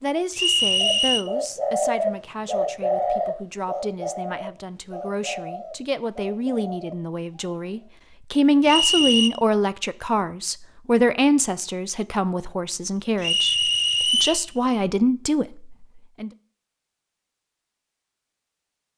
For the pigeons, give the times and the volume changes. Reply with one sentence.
You can hear the pigeons from 0.8 to 7.8 s, getting quieter.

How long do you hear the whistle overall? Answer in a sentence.
The whistle can be heard for 3 seconds in total.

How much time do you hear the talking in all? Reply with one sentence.
The talking can be heard for 16 seconds in total.